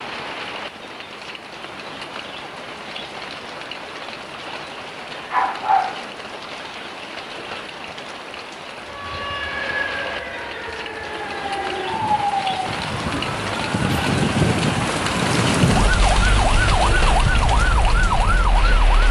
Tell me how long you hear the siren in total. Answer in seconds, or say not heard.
10 s.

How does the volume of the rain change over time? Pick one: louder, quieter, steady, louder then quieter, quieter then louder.
louder.